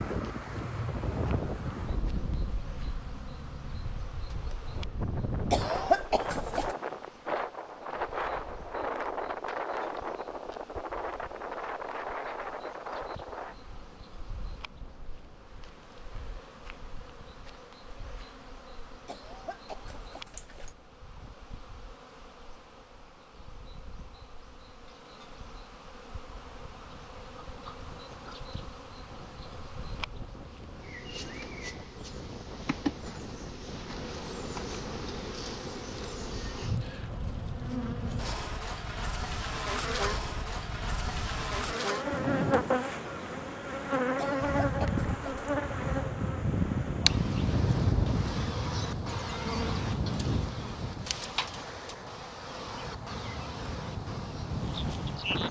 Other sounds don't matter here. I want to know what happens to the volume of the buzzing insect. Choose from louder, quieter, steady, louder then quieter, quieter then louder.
louder.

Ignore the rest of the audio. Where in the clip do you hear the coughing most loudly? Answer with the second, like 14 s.
6 s.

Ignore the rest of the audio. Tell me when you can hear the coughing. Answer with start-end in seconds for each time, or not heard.
5.5-6.8, 19.1-20.8, 44.1-45.5.